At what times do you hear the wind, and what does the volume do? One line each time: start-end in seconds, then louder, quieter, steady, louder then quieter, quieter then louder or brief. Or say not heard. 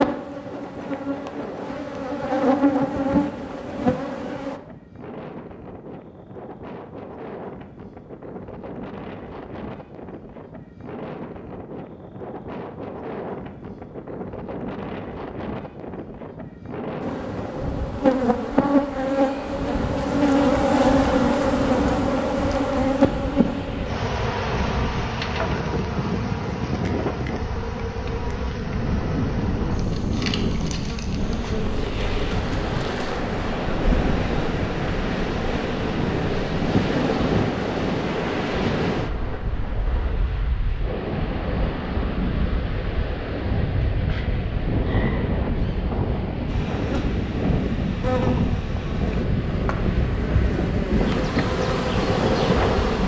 0.0-53.0 louder.